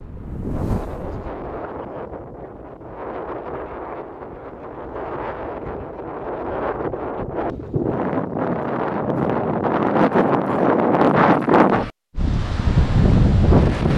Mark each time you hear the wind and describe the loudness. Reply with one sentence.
You can hear the wind from 0.0 to 13.9 s, getting louder.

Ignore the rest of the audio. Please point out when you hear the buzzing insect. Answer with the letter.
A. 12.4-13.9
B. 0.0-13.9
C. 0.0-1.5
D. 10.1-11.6
C.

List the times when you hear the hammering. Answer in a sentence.
You can't hear the hammering here.